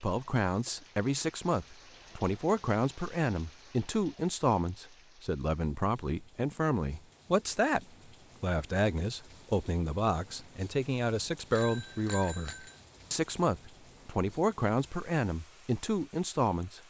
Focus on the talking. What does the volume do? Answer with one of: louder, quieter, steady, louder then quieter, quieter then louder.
steady.